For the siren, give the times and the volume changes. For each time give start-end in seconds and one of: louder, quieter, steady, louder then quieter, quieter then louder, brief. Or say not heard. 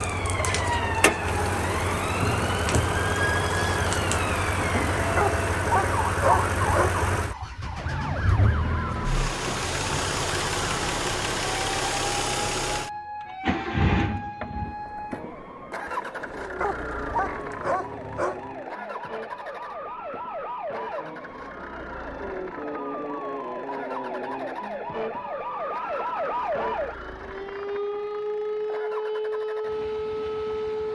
0.0-30.8 quieter then louder.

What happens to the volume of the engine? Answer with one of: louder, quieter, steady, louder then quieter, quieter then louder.
quieter.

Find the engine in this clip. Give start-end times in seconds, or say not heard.
0.0-30.8.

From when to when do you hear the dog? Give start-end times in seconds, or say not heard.
5.2-7.0, 16.6-18.6.